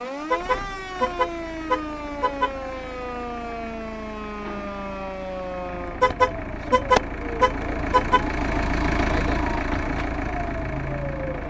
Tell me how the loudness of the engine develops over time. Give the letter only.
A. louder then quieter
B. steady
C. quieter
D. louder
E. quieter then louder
D.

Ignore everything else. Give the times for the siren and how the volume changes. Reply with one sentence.
The siren can be heard from 0.0 to 11.4 s, at a steady volume.